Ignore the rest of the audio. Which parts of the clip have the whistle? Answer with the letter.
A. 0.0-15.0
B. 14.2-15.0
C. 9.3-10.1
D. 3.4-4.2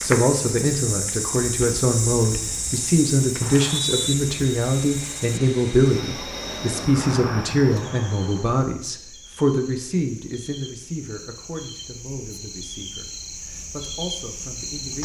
D.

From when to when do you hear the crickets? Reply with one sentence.
The crickets can be heard from 0.0 to 15.0 s.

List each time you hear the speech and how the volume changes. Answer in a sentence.
You can hear the speech from 0.0 to 15.0 s, getting quieter.